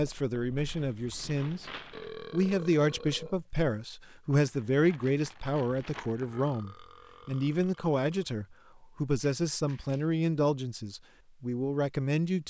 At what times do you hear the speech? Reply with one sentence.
You can hear the speech from 0.0 to 12.4 s.